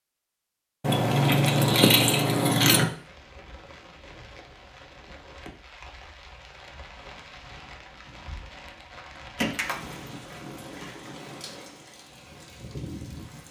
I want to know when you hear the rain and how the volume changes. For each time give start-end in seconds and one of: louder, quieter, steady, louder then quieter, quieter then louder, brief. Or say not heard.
2.9-13.4 louder.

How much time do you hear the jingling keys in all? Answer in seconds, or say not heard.
4 s.